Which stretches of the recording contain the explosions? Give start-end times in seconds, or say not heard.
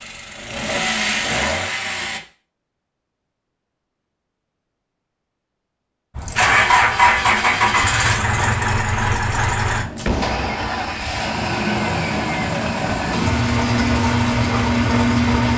9.9-11.2.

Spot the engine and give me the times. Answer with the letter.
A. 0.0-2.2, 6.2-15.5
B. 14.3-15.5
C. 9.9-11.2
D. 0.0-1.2
A.